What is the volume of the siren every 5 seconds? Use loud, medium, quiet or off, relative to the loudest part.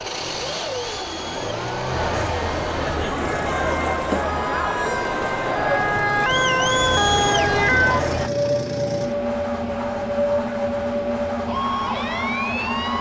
medium, loud, loud.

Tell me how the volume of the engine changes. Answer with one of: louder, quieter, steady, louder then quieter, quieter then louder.
quieter then louder.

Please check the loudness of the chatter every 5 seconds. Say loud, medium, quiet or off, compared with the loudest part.
loud, loud, off.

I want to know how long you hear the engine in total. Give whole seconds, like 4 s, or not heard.
13 s.